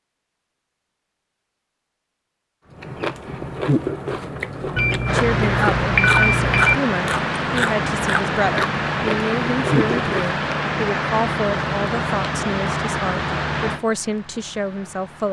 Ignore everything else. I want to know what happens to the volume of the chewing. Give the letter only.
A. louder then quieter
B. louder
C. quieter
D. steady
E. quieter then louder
D.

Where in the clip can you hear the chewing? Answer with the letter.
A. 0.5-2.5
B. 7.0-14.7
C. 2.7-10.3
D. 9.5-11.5
C.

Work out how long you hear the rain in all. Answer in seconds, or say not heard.
10 s.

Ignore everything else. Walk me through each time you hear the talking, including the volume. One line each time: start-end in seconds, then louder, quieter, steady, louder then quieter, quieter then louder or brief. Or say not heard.
5.1-15.2 steady.